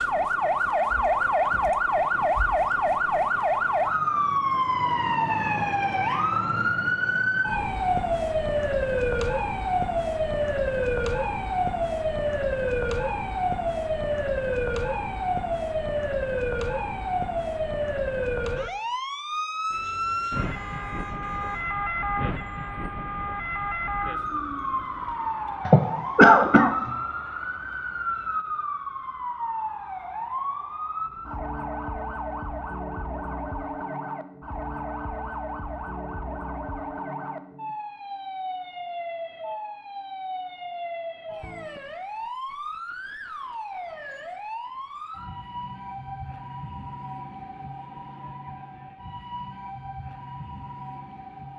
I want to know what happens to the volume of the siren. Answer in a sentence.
The loudness of the siren goes down.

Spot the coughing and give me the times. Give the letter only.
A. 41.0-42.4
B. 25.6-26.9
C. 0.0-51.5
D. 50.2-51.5
B.